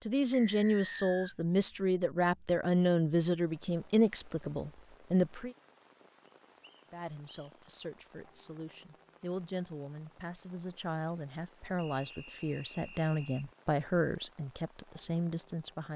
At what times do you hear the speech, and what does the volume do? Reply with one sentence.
The speech can be heard from 0.1 to 5.5 s, getting quieter; and from 6.9 to 15.9 s, getting louder.